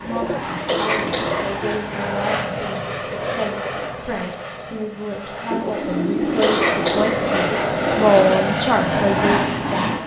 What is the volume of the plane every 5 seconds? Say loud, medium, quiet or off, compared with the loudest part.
medium, loud.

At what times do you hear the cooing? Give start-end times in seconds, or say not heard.
0.0-1.6, 5.5-8.2.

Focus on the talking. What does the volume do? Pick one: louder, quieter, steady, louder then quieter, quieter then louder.
louder.